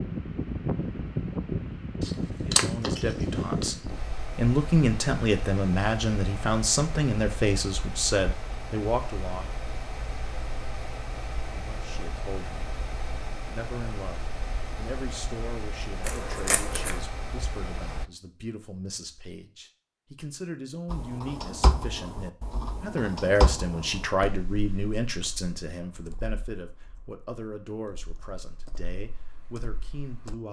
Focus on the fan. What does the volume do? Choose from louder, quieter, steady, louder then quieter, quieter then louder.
quieter.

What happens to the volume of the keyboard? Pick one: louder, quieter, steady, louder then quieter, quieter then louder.
quieter then louder.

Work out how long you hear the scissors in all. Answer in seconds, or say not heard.
3 s.